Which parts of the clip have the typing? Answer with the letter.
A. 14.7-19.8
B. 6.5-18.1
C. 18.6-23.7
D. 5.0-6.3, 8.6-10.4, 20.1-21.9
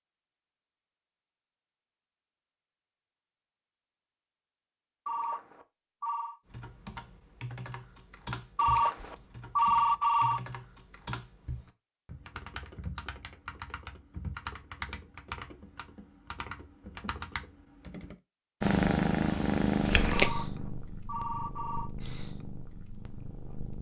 B.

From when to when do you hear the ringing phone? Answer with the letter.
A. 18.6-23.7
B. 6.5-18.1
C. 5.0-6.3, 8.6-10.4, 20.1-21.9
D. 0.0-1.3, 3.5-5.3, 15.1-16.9
C.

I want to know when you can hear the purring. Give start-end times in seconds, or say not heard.
18.6-23.7.